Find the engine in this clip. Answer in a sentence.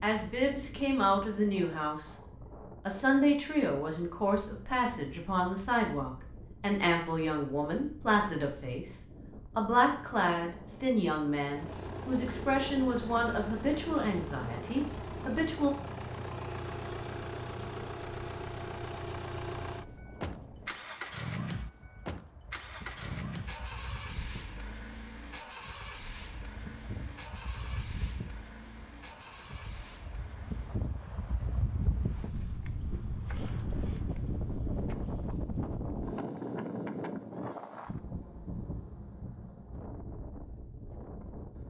The engine can be heard from 11.5 to 30.9 s.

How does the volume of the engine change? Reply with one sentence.
The loudness of the engine goes down.